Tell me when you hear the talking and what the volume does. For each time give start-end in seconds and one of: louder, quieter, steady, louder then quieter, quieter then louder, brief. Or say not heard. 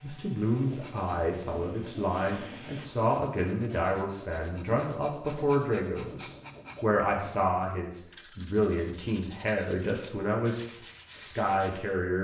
0.0-12.1 steady.